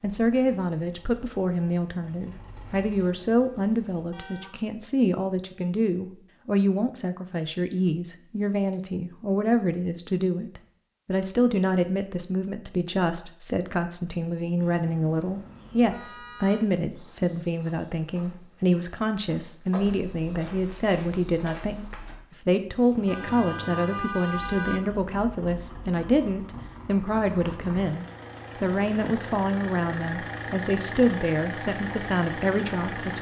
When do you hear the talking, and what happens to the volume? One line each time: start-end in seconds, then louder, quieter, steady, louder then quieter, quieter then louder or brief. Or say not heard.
0.0-33.1 steady.